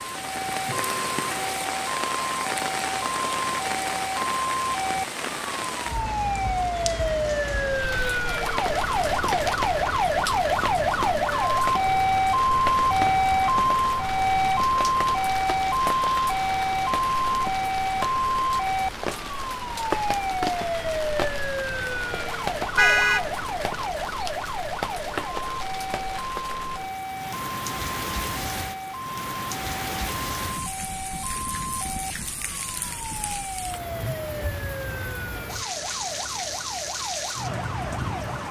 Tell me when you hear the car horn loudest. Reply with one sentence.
The volume of the car horn peaks at 23 seconds.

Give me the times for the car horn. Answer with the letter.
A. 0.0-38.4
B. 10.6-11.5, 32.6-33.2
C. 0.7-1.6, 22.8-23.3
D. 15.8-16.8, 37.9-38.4
C.